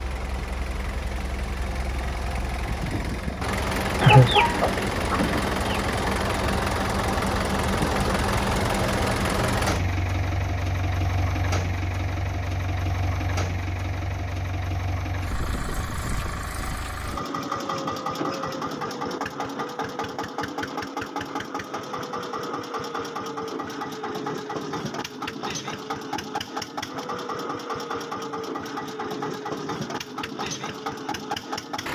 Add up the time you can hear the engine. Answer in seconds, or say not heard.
32 s.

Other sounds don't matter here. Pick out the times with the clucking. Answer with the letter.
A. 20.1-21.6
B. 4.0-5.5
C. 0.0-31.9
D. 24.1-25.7
B.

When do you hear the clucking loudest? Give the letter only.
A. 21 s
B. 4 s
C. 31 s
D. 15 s
B.